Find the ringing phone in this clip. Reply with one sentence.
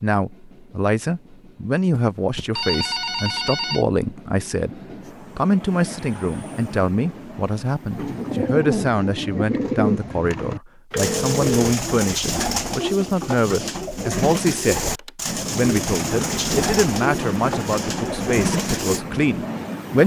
You can hear the ringing phone from 1.9 to 3.9 s, from 10.9 to 11.8 s and from 14.8 to 15.3 s.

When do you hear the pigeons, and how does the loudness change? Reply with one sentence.
You can hear the pigeons from 7.8 to 19.0 s, at a steady volume.